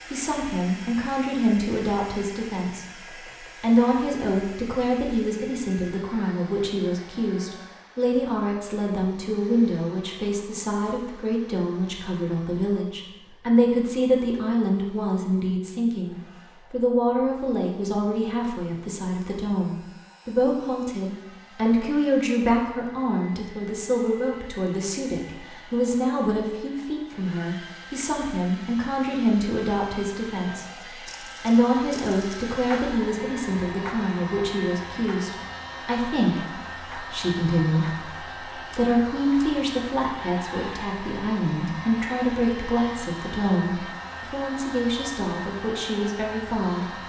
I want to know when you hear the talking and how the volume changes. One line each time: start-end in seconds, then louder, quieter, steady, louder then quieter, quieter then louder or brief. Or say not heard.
0.1-47.0 steady.